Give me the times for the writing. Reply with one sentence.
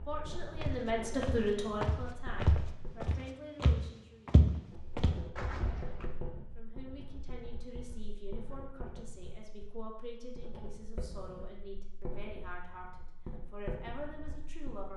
The writing can be heard from 0.0 to 3.0 s and from 4.7 to 14.9 s.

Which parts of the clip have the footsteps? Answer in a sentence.
You can hear the footsteps from 0.6 to 6.0 s.